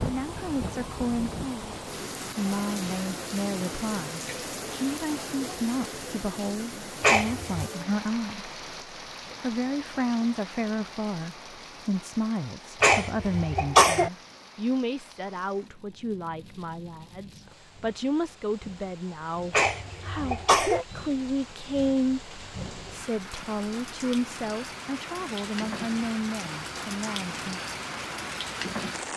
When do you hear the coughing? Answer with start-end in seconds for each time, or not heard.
7.0-7.7, 12.8-14.1, 19.5-20.9.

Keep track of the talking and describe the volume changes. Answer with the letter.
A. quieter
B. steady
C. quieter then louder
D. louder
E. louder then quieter
B.